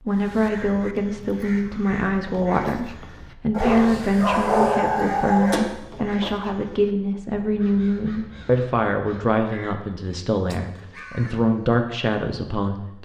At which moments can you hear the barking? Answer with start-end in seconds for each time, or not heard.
3.5-5.6.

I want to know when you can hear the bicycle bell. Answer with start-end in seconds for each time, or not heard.
not heard.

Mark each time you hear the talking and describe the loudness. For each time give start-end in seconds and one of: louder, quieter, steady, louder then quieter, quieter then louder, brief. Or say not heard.
0.0-13.0 steady.